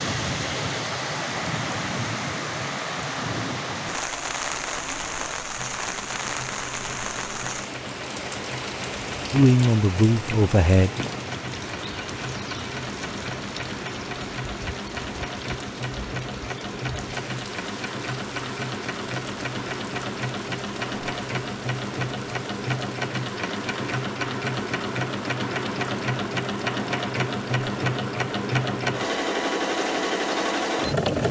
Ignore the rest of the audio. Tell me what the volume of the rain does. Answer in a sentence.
The loudness of the rain goes down.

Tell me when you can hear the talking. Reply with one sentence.
You can hear the talking from 9.3 to 10.9 s.